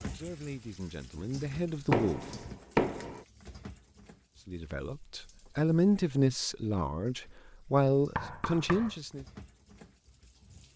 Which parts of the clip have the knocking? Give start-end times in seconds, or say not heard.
1.9-3.2, 8.2-8.9.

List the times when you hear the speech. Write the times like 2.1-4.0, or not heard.
0.0-2.2, 4.5-9.2.